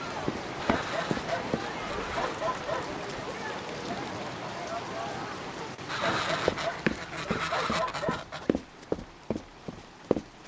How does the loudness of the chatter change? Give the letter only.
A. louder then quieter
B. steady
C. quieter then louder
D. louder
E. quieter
B.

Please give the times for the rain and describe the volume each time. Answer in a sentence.
The rain can be heard from 0.0 to 10.4 s, getting quieter.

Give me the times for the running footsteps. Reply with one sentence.
The running footsteps can be heard from 0.2 to 1.6 s and from 6.5 to 10.4 s.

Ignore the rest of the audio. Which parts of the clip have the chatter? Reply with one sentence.
You can hear the chatter from 0.0 to 5.8 s.